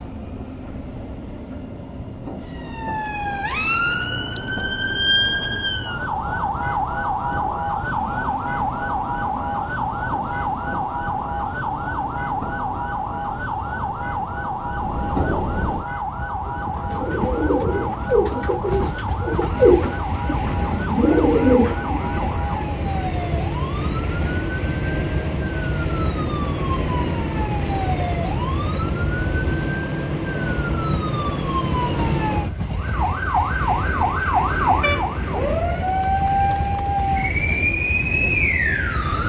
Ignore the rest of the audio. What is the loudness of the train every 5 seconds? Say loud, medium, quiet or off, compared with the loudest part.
medium, medium, medium, loud, loud, loud, loud, loud.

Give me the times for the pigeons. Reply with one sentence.
The pigeons can be heard from 16.6 to 22.1 s.